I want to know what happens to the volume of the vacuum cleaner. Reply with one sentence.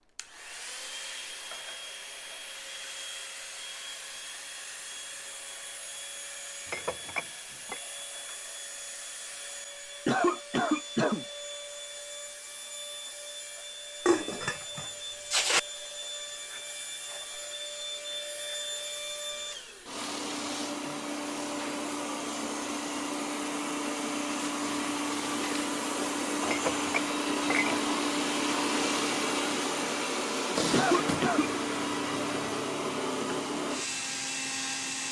The loudness of the vacuum cleaner goes up.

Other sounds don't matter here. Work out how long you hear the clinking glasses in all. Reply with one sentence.
The clinking glasses can be heard for 4 seconds in total.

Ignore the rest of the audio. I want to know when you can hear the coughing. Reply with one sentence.
The coughing can be heard from 10.1 to 11.2 s and from 30.7 to 31.5 s.